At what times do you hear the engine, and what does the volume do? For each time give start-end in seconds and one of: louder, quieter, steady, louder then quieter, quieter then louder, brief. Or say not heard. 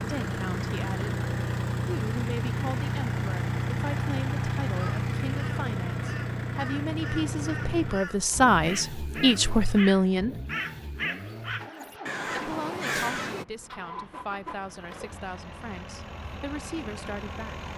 0.0-17.7 quieter.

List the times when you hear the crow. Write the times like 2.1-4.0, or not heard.
4.7-13.4.